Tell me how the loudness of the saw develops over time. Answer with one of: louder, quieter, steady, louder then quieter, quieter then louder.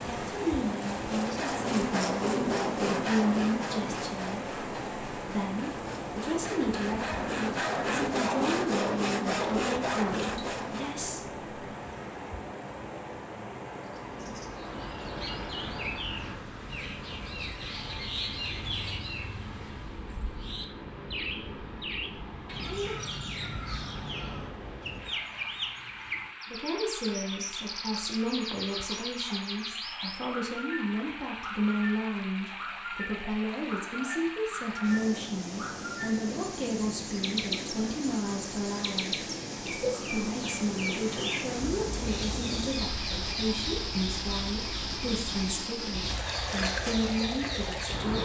quieter then louder.